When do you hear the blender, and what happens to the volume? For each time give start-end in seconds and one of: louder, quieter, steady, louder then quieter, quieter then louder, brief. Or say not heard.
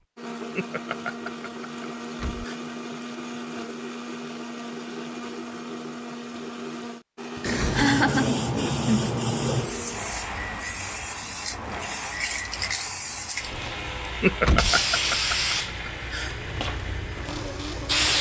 0.1-18.1 steady.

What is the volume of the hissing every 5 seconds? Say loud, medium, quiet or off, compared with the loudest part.
off, loud, medium, loud.